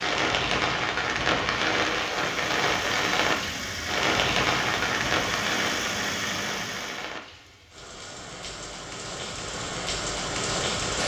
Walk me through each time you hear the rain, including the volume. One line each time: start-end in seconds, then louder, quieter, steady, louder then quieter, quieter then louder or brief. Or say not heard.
0.0-11.0 quieter then louder.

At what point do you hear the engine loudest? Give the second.
6 s.